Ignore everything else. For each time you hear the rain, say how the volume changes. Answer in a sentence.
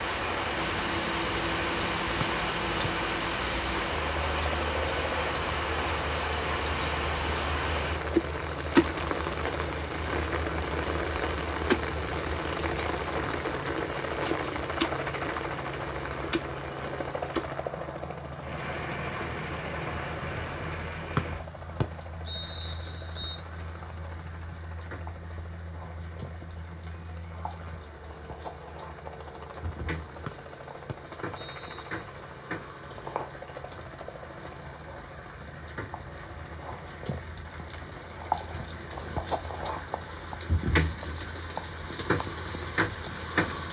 You can hear the rain from 0.0 to 43.6 s, getting quieter then louder.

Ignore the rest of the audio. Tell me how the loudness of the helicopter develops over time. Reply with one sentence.
The volume of the helicopter goes down.